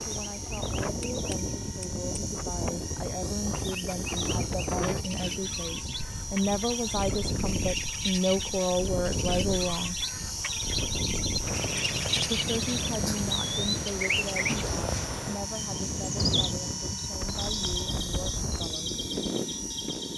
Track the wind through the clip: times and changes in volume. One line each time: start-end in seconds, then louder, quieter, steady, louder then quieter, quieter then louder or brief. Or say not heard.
0.0-20.1 steady.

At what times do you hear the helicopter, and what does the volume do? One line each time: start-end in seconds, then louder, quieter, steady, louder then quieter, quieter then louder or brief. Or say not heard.
0.0-20.1 steady.